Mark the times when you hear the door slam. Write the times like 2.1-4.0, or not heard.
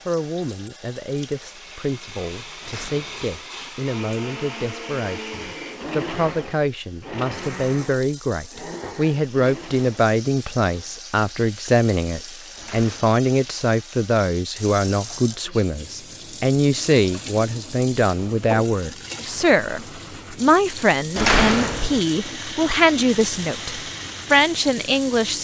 2.6-3.4, 12.6-13.2, 21.1-22.0.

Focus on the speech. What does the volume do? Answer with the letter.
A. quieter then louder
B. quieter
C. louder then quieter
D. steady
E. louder
E.